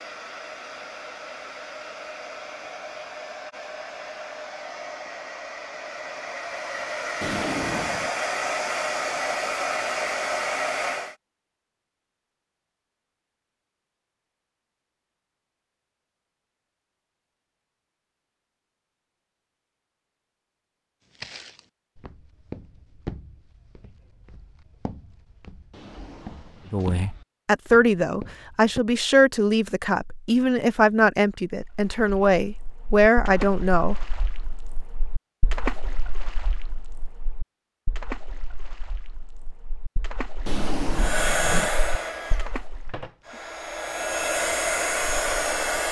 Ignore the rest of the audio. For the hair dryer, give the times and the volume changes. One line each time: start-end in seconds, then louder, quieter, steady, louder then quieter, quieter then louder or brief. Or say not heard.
0.0-11.2 louder
40.9-45.8 quieter then louder.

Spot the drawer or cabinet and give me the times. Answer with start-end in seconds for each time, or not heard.
7.2-8.1, 25.7-27.0, 40.5-41.8.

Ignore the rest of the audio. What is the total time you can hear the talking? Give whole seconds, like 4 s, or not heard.
7 s.